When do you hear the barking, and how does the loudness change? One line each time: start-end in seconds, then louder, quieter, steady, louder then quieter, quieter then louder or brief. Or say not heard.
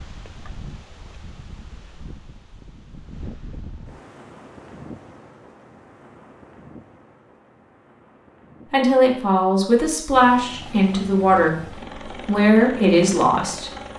not heard.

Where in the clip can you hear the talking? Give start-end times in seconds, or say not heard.
8.7-13.7.